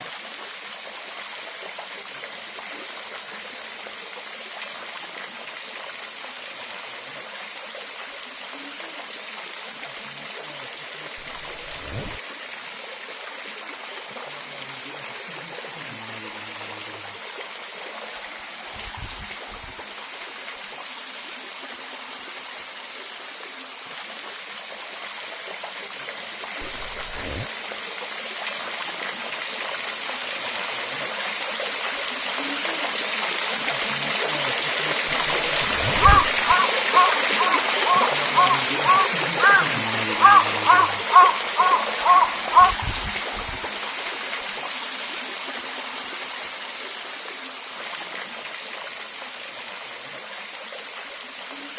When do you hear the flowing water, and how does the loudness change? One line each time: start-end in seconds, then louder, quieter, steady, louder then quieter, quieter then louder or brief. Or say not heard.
0.0-51.7 louder then quieter.